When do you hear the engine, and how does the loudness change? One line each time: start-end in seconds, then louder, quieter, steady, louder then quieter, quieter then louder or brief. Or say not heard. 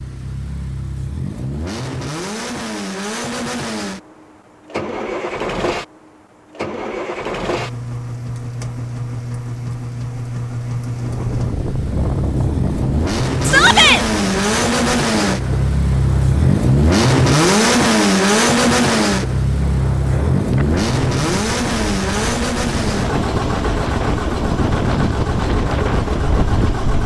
0.0-27.0 louder then quieter.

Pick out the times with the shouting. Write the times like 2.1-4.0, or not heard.
13.4-14.1.